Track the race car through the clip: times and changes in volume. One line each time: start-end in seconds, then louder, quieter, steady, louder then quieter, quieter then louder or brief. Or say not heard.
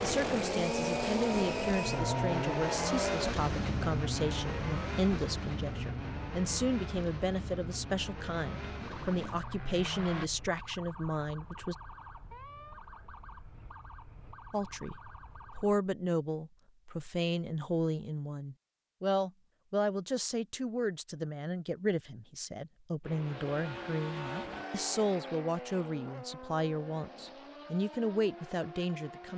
0.0-10.3 quieter
23.0-29.3 quieter.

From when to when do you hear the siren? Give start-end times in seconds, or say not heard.
0.1-15.8.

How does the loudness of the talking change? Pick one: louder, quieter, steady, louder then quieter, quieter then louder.
steady.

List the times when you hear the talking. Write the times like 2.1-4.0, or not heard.
0.0-11.8, 14.5-29.3.